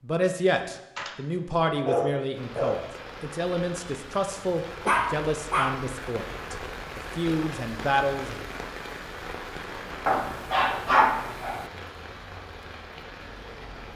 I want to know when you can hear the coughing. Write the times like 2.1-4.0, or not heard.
not heard.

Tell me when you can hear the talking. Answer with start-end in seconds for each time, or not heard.
0.0-8.4.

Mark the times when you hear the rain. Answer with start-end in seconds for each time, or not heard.
2.4-13.9.